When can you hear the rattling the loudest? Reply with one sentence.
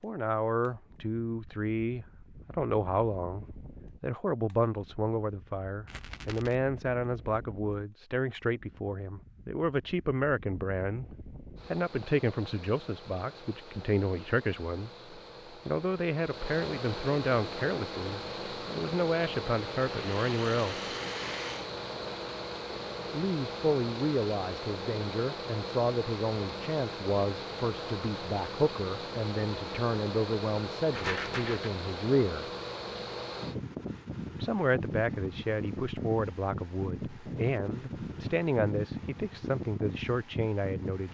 The loudest moment of the rattling is at 31 seconds.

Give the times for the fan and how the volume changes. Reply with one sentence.
The fan can be heard from 0.0 to 41.1 s, getting louder.